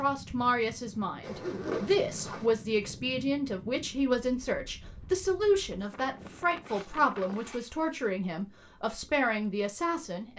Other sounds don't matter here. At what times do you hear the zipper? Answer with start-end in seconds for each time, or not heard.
1.2-2.5, 6.6-8.1.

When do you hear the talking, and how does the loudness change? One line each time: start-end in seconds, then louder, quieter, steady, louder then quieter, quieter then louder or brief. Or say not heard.
0.0-10.3 steady.